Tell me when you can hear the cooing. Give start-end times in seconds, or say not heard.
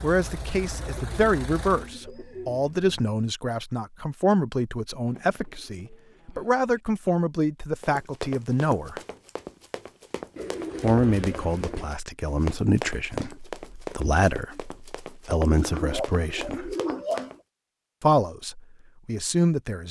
0.7-2.9, 5.0-6.8, 10.3-12.0, 15.6-17.4.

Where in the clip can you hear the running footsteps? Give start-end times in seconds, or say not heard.
7.8-17.4.